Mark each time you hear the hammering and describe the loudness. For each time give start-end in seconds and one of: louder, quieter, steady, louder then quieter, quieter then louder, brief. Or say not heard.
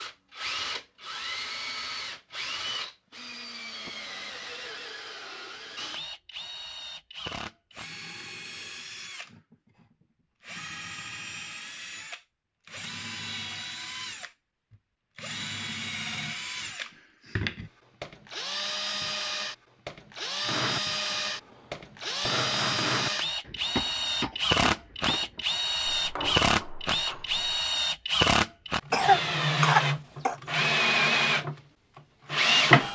20.4-27.6 louder then quieter.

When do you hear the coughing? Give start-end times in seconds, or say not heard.
28.9-30.4.